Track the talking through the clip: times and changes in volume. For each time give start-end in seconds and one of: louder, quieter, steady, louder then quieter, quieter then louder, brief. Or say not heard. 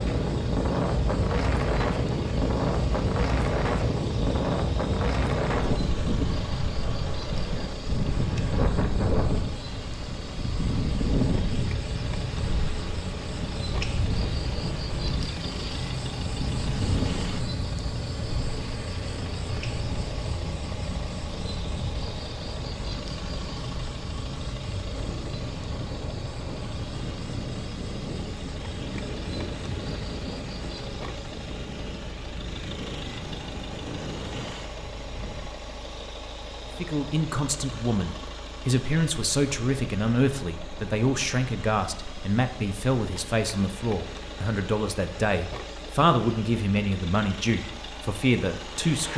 36.8-49.1 steady.